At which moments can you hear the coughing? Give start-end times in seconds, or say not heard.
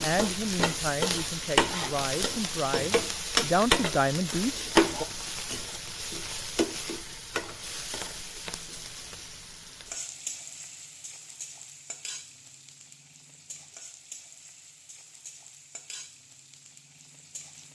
not heard.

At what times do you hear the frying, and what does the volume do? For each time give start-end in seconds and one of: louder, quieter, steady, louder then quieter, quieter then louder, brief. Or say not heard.
0.0-17.6 quieter.